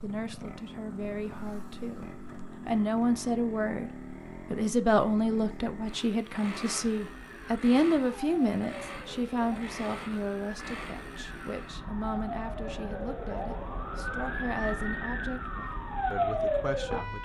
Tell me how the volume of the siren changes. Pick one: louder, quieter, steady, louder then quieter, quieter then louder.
louder.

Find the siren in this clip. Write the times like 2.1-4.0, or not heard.
6.8-17.2.